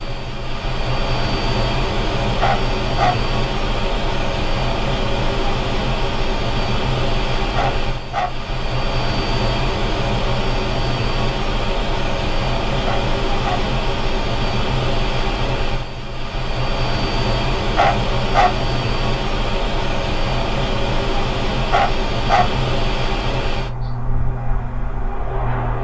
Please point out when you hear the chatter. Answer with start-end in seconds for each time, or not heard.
not heard.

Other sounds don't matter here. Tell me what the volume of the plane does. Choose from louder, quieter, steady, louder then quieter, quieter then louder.
steady.